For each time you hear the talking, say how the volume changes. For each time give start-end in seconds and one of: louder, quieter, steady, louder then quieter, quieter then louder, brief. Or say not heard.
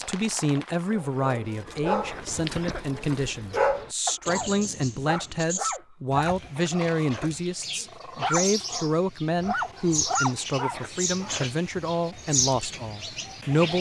0.0-13.7 steady.